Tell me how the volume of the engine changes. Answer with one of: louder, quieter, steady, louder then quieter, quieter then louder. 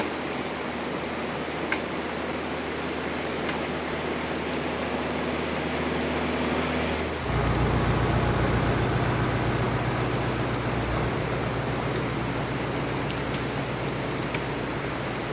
louder then quieter.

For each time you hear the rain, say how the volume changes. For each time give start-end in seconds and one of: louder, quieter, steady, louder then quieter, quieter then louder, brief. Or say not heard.
0.0-15.2 steady.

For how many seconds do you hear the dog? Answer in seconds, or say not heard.
not heard.